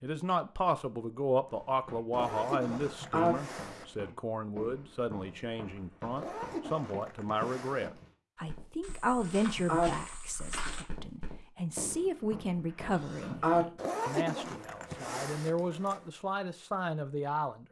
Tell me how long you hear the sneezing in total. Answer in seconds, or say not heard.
2 s.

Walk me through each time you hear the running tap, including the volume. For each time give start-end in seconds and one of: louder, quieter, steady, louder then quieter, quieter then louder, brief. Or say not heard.
not heard.